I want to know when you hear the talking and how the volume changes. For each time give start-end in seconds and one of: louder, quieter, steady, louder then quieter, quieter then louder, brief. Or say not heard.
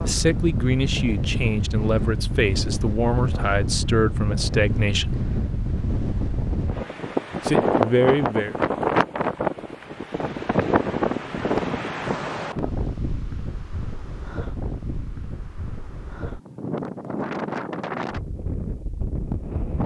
0.0-5.2 steady
7.4-8.6 brief.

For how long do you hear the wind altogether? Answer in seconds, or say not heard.
20 s.